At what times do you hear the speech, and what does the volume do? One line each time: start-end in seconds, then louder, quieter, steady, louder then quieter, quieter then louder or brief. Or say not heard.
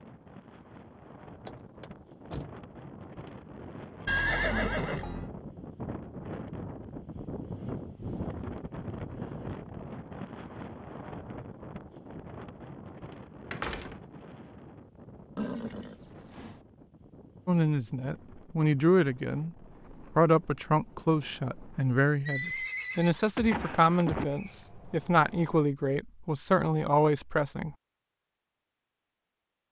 17.4-19.6 brief
20.1-27.8 steady.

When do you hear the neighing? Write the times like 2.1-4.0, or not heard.
4.0-5.3, 15.3-16.6, 22.2-24.2.